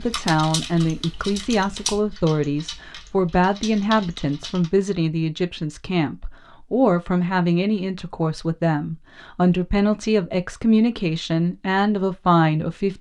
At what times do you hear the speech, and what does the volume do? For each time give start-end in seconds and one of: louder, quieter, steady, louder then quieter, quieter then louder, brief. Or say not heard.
0.0-12.9 steady.